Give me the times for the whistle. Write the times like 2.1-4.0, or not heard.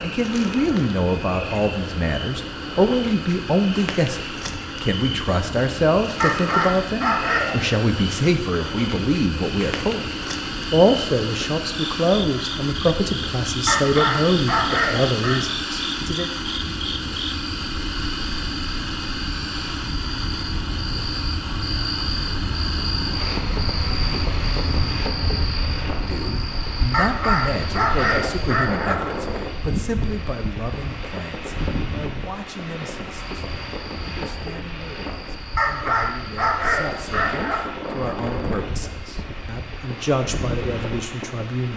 not heard.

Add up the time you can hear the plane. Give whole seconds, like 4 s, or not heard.
42 s.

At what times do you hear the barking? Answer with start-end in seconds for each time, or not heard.
6.2-7.5, 13.7-15.3, 26.9-28.9, 35.5-37.6.